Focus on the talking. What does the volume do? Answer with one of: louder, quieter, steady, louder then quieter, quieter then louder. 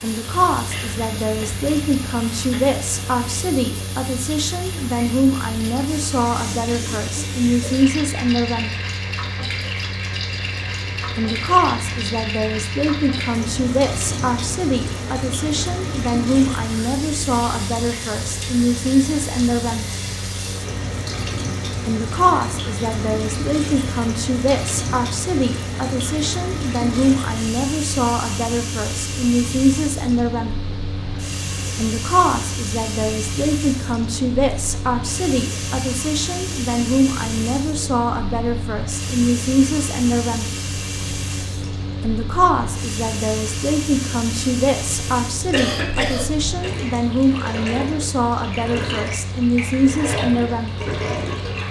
steady.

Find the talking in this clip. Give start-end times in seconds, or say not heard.
0.0-8.7, 11.2-19.9, 21.9-30.6, 31.8-40.5, 42.0-50.8.